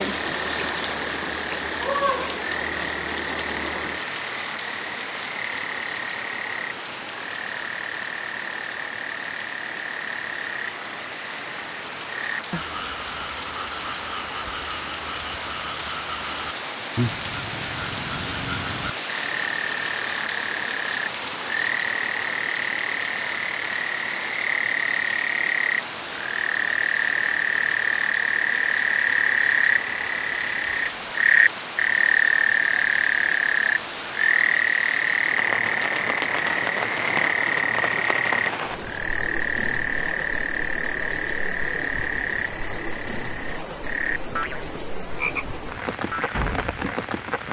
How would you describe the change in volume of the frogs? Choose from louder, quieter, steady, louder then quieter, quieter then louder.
louder then quieter.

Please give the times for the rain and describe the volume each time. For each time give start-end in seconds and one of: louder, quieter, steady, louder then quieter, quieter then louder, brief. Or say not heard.
0.0-47.4 steady.